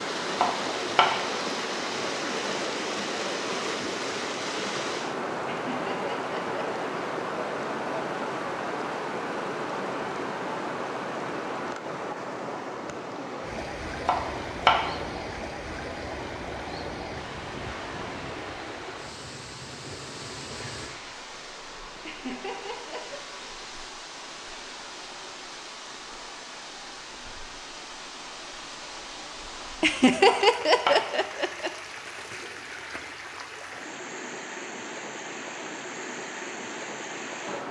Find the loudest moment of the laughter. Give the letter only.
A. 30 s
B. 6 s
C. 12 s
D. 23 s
A.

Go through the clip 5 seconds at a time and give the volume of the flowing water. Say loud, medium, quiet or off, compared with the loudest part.
loud, loud, loud, medium, medium, medium, medium, medium.